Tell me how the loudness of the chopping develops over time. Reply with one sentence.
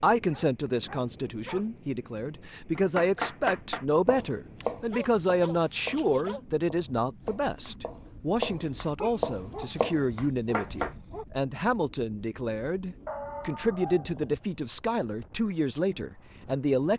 The volume of the chopping goes down, then up.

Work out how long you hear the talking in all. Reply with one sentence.
You can hear the talking for 17 seconds altogether.